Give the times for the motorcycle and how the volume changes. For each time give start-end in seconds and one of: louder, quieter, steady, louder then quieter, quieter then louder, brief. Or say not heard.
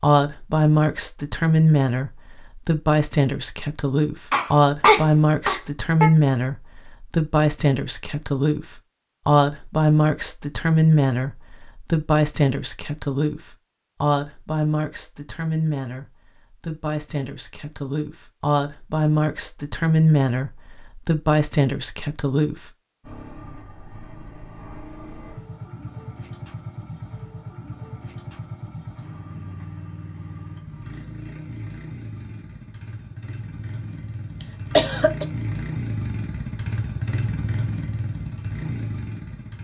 23.0-39.5 louder.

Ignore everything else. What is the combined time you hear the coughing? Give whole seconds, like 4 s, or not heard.
2 s.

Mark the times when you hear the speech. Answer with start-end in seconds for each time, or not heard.
0.0-22.7.